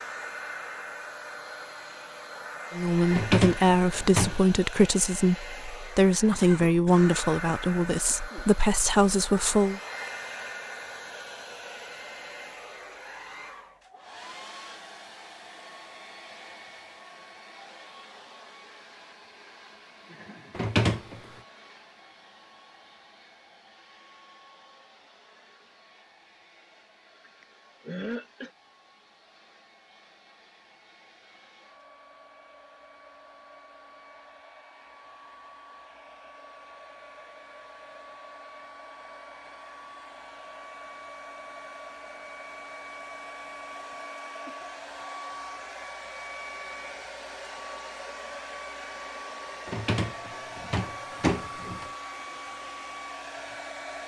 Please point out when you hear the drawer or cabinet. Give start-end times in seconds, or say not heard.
3.1-4.4, 20.5-21.2, 49.6-51.9.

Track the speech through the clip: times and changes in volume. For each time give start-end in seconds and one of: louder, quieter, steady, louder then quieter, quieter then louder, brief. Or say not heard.
2.7-9.8 steady.